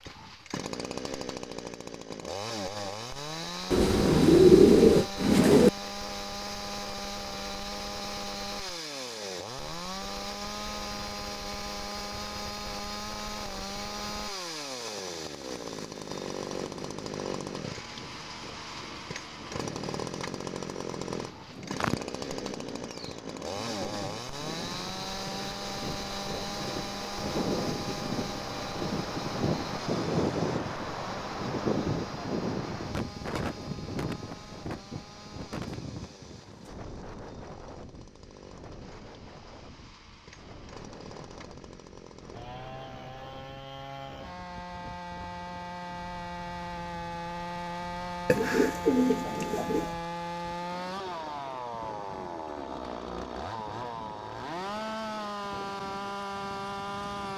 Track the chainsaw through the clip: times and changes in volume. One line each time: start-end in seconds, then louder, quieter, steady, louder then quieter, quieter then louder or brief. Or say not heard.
0.0-57.3 quieter then louder.